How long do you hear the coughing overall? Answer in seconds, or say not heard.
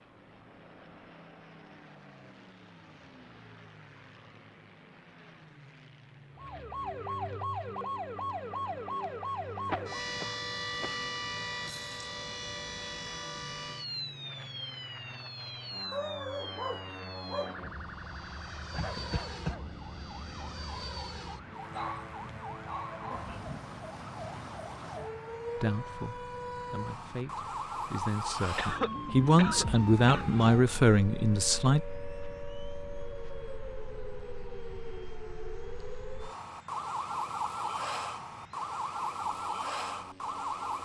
4 s.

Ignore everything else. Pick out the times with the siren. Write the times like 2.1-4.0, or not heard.
6.3-40.8.